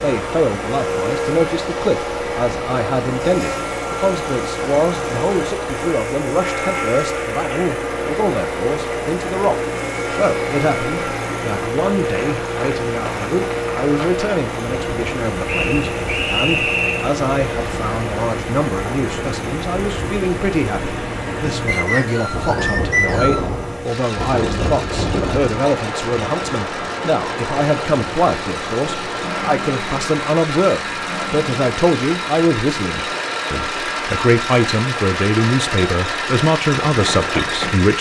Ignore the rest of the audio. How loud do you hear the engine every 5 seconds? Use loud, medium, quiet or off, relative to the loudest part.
loud, loud, loud, loud, medium, medium, loud, loud.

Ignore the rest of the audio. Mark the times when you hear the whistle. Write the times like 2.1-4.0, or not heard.
15.4-17.1, 21.6-23.4.